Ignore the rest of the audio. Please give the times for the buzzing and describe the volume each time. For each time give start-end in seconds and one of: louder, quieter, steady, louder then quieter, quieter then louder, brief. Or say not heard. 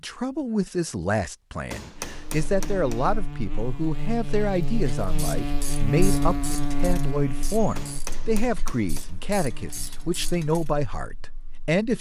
1.9-11.8 louder then quieter.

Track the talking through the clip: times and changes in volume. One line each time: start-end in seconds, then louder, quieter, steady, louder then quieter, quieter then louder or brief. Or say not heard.
0.0-11.9 steady.